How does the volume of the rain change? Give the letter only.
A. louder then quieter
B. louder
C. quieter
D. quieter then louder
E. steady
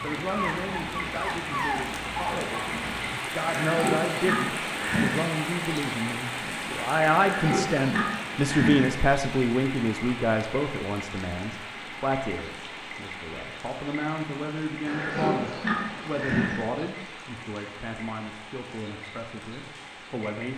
C.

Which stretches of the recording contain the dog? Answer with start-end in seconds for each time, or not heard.
0.0-3.1.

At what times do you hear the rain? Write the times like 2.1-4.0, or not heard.
0.0-20.5.